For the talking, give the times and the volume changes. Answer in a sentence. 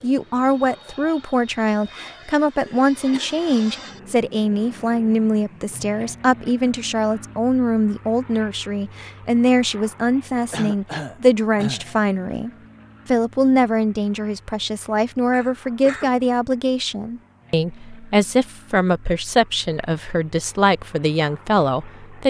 The talking can be heard from 0.0 to 22.2 s, at a steady volume.